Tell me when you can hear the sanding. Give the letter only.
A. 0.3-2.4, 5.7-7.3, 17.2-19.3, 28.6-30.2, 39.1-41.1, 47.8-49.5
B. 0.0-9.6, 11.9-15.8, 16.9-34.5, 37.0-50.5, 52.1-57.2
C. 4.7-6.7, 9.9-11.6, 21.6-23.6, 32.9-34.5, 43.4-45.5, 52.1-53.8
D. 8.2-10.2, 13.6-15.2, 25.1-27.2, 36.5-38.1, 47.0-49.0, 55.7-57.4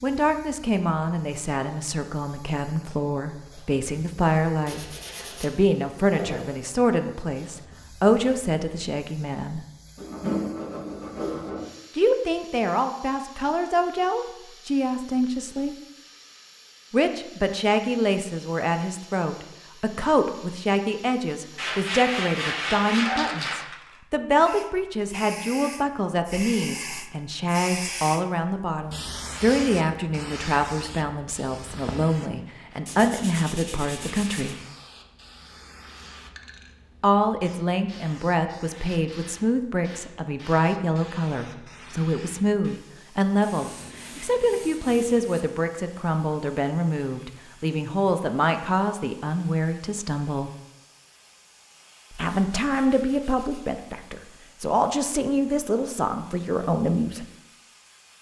C.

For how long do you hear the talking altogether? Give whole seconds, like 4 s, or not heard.
50 s.